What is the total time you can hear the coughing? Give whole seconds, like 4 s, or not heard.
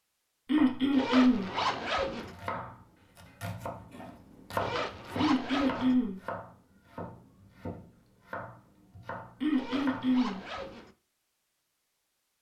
3 s.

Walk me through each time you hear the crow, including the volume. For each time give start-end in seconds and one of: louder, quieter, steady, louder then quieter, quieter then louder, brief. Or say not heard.
not heard.